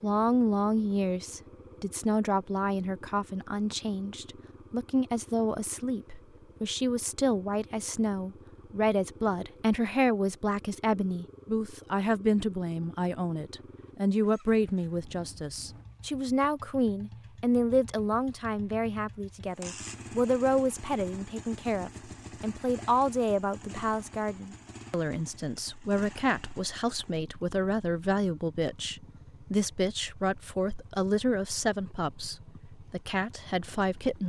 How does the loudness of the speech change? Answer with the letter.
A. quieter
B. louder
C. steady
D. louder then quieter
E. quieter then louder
C.